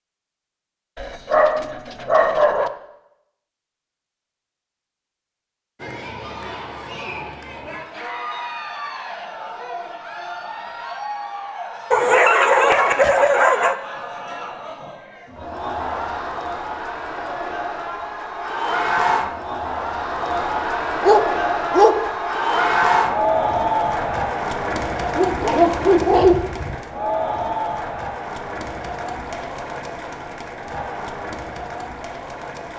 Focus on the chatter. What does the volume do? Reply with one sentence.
The loudness of the chatter goes up, then down.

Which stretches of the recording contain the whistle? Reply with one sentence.
The whistle can't be heard in this clip.